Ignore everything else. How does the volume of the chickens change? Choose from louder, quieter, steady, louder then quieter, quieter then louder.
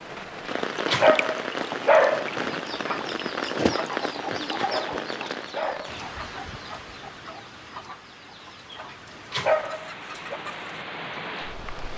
quieter.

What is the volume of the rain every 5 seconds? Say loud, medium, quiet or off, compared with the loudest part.
loud, medium, medium.